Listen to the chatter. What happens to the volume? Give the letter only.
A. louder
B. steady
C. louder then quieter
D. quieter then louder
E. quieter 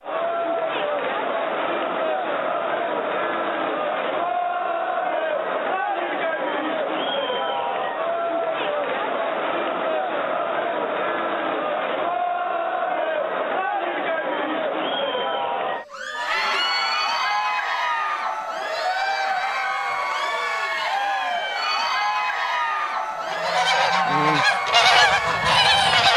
B.